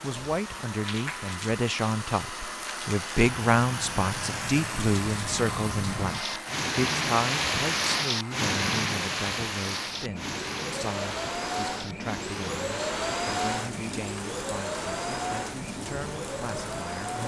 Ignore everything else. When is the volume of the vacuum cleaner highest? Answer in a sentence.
The volume of the vacuum cleaner peaks at 13 seconds.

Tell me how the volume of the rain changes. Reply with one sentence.
The volume of the rain goes up, then down.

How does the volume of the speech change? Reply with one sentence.
The loudness of the speech goes down.